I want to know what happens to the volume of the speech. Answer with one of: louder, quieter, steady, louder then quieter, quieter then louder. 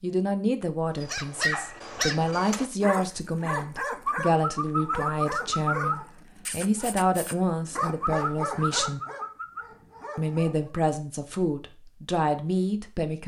steady.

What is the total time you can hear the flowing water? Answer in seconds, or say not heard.
not heard.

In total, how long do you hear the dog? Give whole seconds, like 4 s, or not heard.
10 s.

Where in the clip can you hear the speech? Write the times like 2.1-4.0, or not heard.
0.0-9.0, 10.2-13.2.